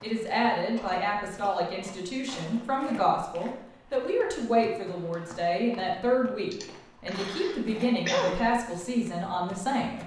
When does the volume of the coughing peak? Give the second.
8 s.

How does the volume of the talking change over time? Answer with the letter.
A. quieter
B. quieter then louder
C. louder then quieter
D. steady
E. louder
D.